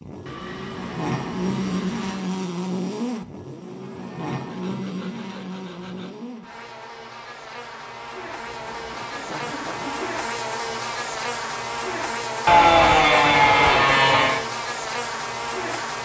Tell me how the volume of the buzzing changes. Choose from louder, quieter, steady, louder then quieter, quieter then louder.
quieter then louder.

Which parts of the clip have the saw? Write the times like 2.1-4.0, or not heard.
0.2-2.2, 4.3-6.2, 8.3-10.2, 12.4-14.4.